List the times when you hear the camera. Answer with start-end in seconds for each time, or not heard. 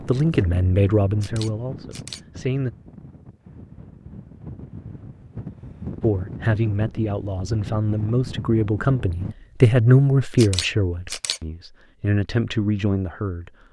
1.2-2.2, 10.3-11.4.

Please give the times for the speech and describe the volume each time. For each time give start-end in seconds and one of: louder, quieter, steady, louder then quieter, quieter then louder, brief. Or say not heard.
0.1-2.7 brief
6.0-13.5 louder then quieter.